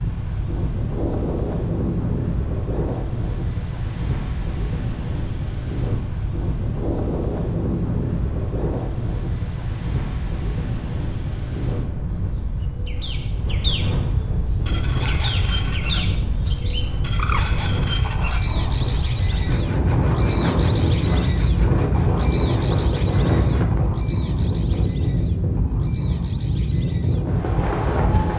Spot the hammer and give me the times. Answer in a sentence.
You can't hear the hammer here.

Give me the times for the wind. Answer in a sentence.
The wind can be heard from 0.0 to 28.3 s.